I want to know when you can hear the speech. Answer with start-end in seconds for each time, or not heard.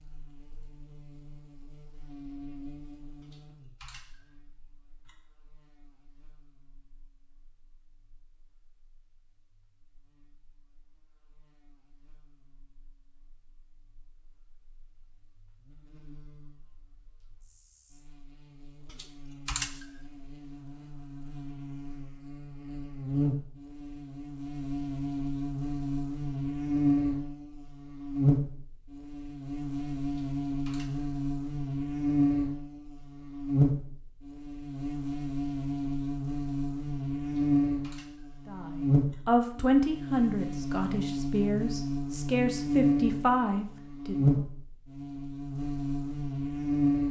38.5-44.4.